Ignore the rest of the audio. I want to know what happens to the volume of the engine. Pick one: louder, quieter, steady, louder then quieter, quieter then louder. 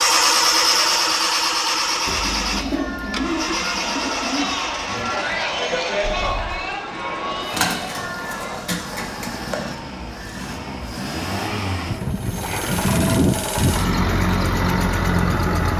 quieter then louder.